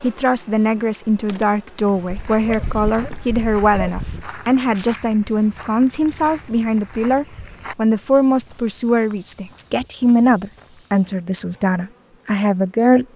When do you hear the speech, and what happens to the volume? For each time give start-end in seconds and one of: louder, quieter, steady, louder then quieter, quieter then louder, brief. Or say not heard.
0.0-13.1 steady.